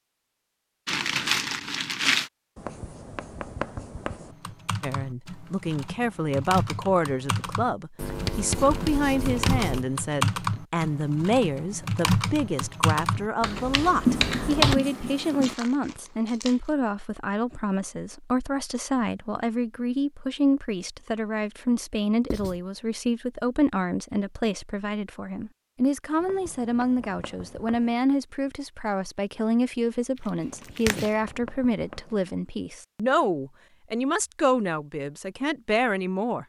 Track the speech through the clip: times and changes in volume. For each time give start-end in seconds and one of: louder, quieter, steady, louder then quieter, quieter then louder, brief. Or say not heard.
4.8-36.4 steady.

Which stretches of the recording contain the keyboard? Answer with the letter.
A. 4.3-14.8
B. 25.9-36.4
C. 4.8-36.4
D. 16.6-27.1
A.